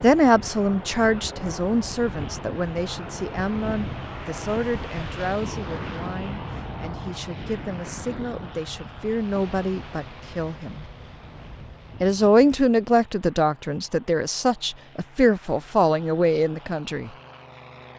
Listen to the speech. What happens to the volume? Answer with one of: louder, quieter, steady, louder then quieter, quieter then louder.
quieter then louder.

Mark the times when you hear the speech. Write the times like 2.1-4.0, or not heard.
0.0-10.8, 12.0-17.1.